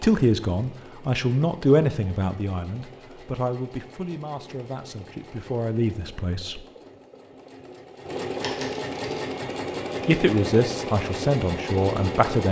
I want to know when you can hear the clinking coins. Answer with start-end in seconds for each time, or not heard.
8.4-9.3.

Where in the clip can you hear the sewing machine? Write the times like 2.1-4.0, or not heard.
0.0-12.4.